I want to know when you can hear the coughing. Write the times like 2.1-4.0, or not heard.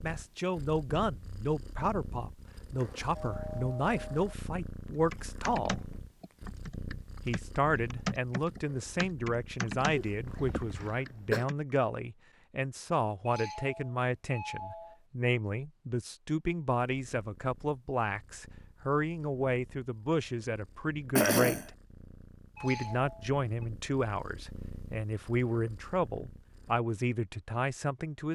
9.9-11.4, 21.1-21.7.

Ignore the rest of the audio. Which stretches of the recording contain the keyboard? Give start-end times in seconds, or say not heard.
4.9-11.6.